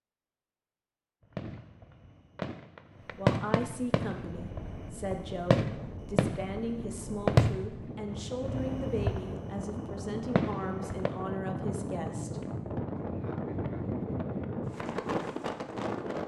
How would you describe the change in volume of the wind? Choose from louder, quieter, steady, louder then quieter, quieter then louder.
louder.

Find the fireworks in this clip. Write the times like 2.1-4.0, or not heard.
1.3-11.2.